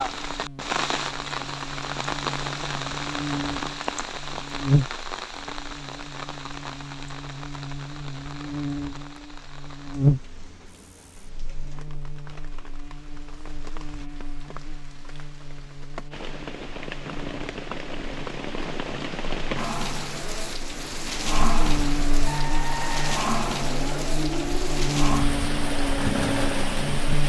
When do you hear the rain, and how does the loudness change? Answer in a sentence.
The rain can be heard from 0.0 to 27.2 s, getting quieter then louder.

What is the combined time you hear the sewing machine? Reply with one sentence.
The sewing machine can be heard for 5 seconds in total.